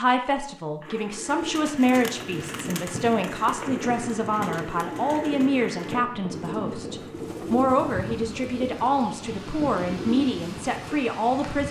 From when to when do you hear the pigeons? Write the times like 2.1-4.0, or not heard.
0.8-11.0.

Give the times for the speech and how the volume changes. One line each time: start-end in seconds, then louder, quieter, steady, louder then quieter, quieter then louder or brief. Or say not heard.
0.0-11.6 steady.